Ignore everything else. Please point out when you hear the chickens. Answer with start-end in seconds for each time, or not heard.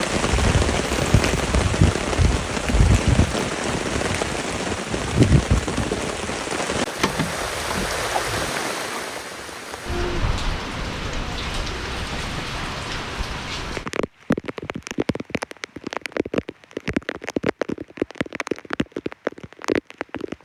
7.0-8.4.